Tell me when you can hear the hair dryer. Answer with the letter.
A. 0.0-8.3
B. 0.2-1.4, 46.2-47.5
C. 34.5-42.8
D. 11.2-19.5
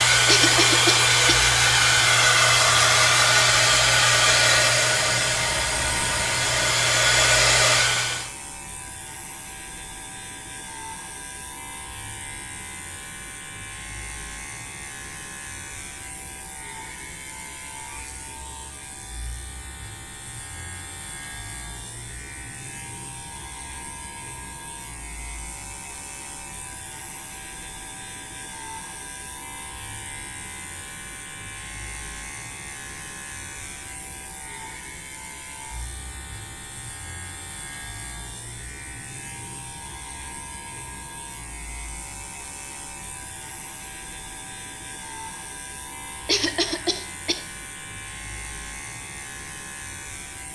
A.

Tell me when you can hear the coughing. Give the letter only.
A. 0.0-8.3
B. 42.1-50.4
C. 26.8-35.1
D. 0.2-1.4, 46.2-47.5
D.